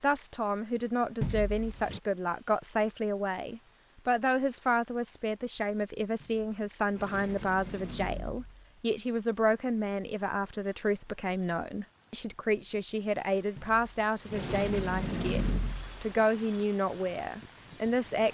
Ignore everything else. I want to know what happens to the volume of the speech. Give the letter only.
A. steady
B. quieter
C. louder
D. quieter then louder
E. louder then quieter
A.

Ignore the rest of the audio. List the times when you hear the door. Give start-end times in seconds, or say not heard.
1.2-2.0, 6.2-8.7, 13.6-15.9.